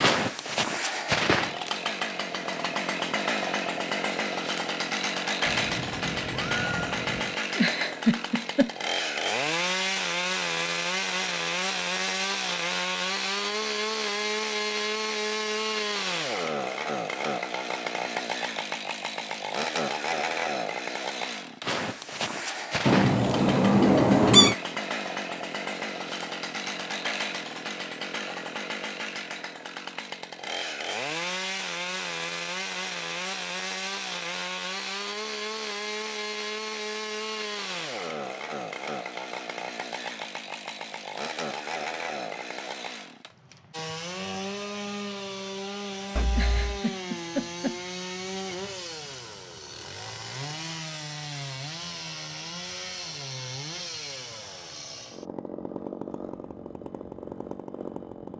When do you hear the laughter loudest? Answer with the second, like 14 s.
8 s.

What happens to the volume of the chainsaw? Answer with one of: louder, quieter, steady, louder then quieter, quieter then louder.
quieter.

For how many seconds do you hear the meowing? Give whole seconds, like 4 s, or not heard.
4 s.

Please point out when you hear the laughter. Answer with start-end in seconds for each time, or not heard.
7.5-8.7, 46.3-47.8.